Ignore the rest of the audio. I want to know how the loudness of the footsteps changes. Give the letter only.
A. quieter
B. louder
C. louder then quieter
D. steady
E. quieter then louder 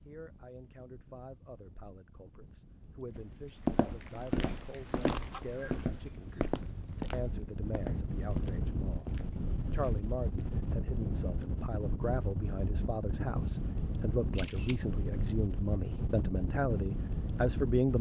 A.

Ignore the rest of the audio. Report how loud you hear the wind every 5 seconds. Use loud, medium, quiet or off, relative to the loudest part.
quiet, loud, loud, loud.